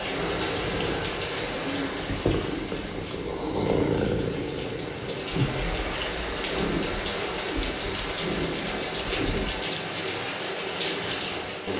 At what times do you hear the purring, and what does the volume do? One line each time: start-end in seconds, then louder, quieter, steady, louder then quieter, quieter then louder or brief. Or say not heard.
0.0-9.7 louder then quieter.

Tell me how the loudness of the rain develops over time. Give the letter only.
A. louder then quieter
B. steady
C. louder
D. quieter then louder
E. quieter
D.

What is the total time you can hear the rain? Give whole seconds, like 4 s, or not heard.
12 s.